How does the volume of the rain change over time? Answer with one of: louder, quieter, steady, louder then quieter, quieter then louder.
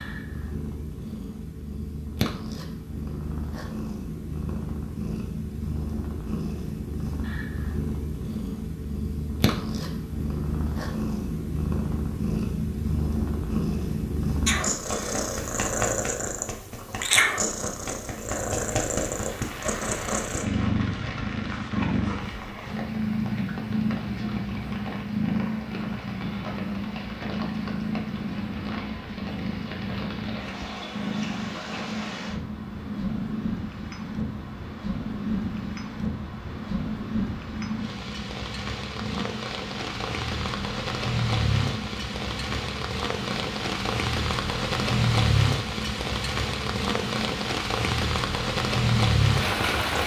louder.